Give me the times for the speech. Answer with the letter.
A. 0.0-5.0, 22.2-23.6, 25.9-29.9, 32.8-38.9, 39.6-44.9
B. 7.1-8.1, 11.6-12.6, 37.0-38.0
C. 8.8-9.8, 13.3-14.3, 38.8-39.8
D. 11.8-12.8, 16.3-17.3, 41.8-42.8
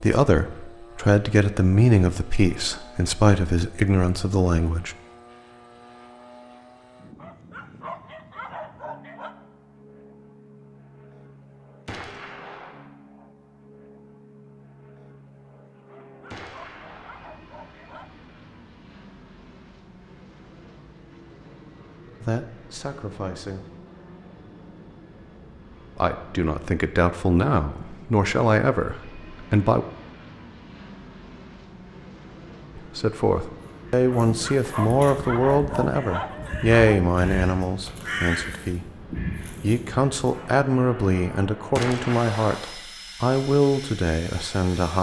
A.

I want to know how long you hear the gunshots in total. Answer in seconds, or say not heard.
3 s.